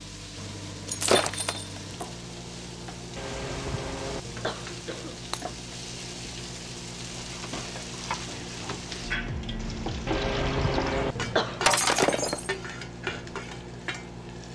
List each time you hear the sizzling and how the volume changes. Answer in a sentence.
The sizzling can be heard from 0.0 to 14.5 s, getting louder.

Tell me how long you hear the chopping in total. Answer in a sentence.
The chopping can't be heard in this clip.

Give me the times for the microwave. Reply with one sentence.
The microwave can be heard from 0.0 to 14.5 s.